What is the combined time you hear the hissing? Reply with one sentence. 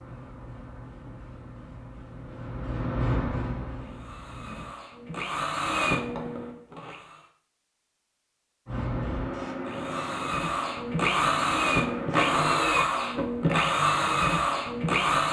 The hissing can be heard for 9 seconds in total.